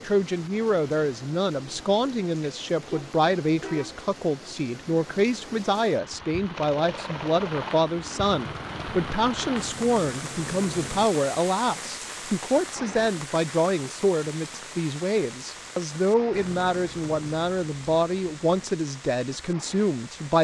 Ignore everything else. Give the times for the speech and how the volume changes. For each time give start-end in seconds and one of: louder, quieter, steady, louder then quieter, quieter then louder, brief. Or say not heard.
0.0-20.3 steady.